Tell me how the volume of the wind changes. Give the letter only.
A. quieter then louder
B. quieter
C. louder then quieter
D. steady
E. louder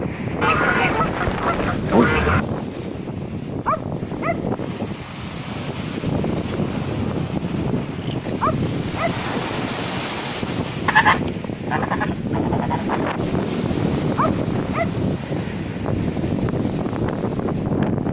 D.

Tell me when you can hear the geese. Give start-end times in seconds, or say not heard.
0.4-2.4, 10.8-13.2.